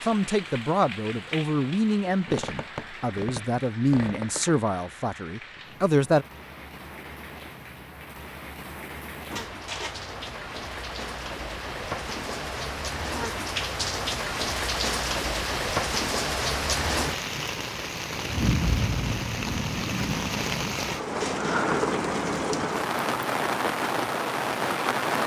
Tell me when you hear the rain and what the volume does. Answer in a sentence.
The rain can be heard from 0.0 to 25.2 s, getting louder.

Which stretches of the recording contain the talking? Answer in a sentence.
The talking can be heard from 0.0 to 6.2 s.